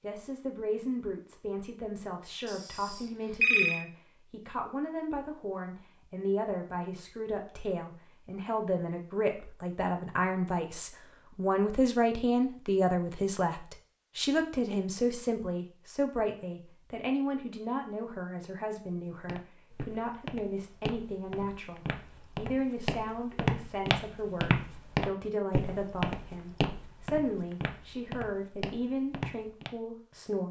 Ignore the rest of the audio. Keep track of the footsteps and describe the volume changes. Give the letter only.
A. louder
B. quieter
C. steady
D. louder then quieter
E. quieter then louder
D.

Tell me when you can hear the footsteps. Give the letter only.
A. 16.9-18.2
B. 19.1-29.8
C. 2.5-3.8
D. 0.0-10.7
B.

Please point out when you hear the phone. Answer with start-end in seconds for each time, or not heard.
2.5-3.8.